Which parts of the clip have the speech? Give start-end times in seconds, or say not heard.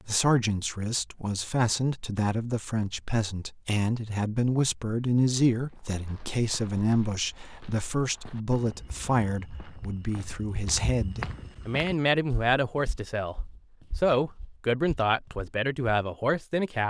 0.1-13.3, 13.9-16.8.